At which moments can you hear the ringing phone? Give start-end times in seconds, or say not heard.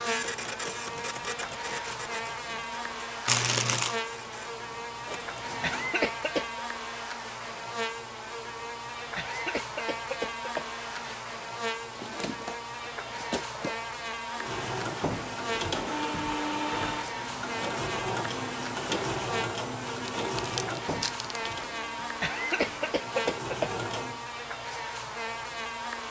not heard.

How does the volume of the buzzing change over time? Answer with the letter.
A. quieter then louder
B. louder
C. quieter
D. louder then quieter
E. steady
E.